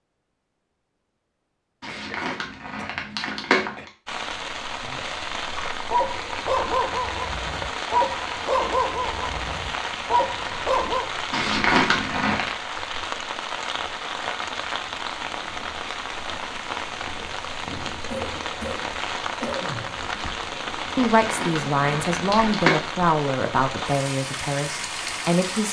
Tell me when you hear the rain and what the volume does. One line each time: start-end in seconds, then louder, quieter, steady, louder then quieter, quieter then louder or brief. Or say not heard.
4.0-25.6 steady.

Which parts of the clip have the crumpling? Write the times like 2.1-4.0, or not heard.
1.8-3.9, 11.3-12.5, 20.9-22.8.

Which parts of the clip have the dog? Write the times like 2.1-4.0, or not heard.
5.5-11.1.